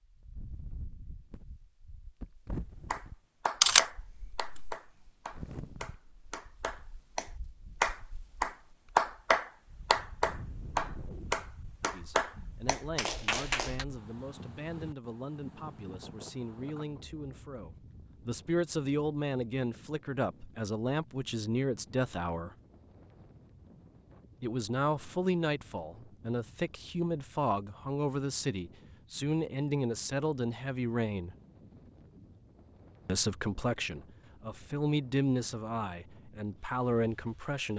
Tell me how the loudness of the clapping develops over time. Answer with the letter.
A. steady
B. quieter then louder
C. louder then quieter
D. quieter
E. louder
C.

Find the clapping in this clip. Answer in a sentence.
The clapping can be heard from 2.9 to 13.8 s.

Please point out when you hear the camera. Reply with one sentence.
The camera can be heard from 3.6 to 4.8 s.